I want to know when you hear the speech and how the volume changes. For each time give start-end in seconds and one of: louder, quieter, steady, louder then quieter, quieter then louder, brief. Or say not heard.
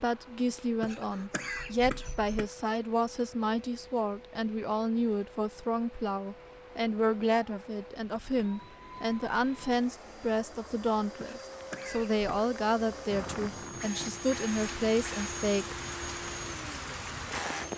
0.0-15.8 steady.